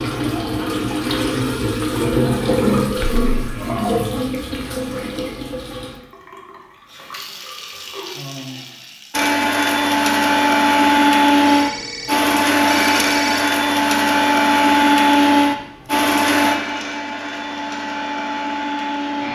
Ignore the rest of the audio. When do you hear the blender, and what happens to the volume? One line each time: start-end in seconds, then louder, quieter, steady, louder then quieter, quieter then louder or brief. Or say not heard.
9.1-19.2 quieter.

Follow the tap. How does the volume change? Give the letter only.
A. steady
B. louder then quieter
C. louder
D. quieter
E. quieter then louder
D.